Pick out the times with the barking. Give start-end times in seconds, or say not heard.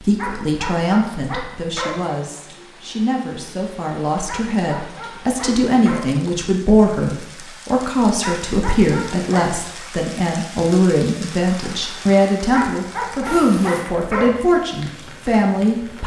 0.1-2.1, 4.2-6.2, 8.2-9.8, 12.5-14.4.